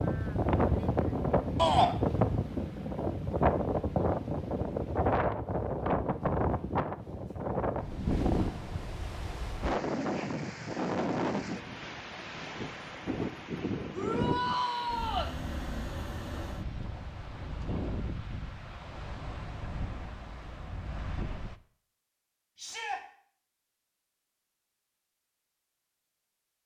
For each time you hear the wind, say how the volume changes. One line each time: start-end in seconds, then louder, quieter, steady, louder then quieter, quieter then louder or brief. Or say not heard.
0.0-21.6 quieter.